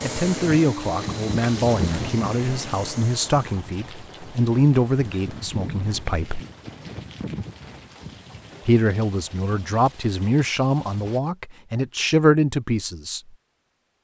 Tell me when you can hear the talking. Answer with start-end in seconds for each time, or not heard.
0.0-6.4, 8.7-13.2.